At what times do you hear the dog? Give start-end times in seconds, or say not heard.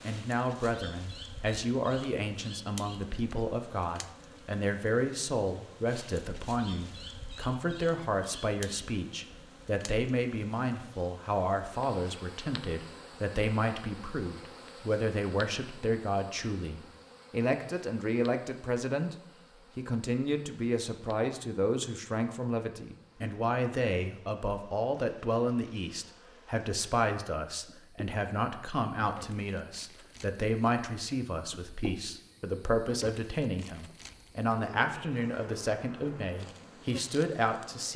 not heard.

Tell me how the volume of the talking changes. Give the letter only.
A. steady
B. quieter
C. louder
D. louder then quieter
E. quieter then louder
A.